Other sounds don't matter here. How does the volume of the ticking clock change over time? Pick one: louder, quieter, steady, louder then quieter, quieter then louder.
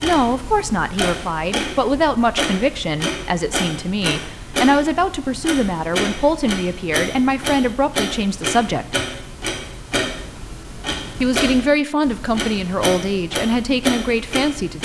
steady.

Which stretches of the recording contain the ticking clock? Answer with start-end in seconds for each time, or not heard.
0.0-14.8.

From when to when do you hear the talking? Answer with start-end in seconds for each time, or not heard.
0.0-8.9, 11.2-14.8.